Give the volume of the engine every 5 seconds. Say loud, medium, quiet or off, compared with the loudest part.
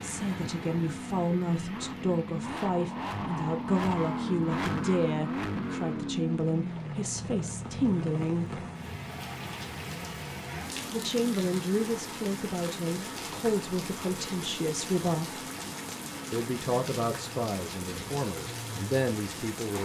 loud, loud, medium, medium.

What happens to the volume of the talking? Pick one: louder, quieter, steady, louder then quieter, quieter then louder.
steady.